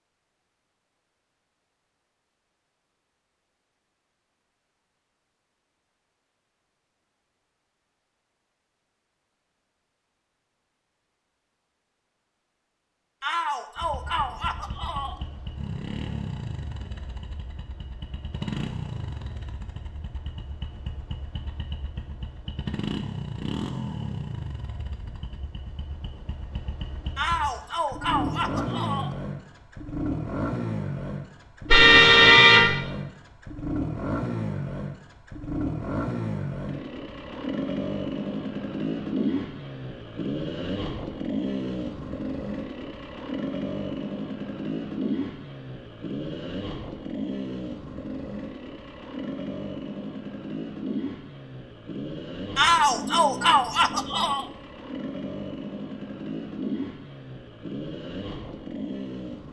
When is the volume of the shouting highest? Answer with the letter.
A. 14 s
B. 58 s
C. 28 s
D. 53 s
D.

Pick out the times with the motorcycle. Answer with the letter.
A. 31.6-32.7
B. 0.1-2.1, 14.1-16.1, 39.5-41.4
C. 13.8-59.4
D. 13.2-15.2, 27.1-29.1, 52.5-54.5
C.